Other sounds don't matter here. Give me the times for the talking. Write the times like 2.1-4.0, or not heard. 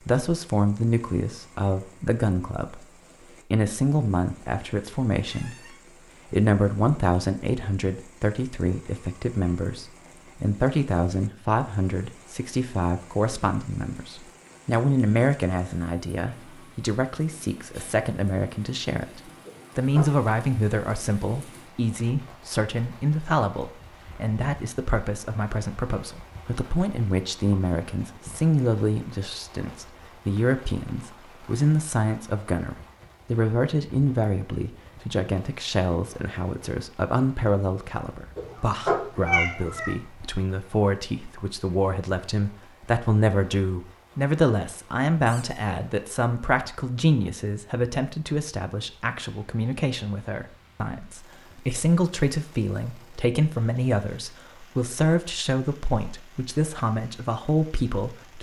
0.0-58.3.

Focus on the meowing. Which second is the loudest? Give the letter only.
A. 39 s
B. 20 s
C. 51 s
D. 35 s
A.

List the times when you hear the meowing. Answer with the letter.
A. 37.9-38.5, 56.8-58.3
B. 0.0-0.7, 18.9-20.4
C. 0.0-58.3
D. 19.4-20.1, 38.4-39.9
D.